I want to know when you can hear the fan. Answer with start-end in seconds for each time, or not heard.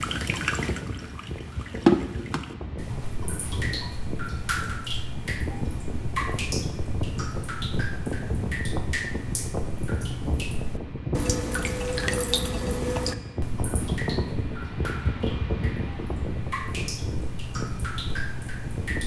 0.0-19.0.